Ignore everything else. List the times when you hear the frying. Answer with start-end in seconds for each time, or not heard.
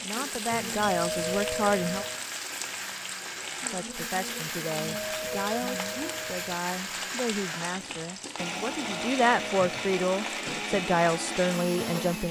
0.0-12.2.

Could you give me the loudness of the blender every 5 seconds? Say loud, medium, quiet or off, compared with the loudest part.
medium, loud, loud.